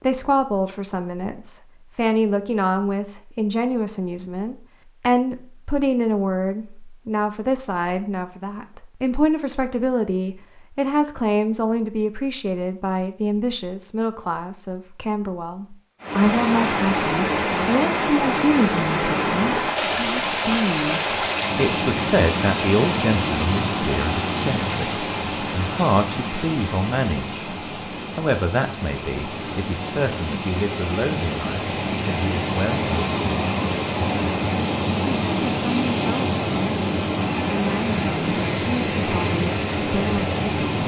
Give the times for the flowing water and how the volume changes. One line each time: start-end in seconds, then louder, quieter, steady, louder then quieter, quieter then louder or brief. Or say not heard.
16.0-40.8 quieter then louder.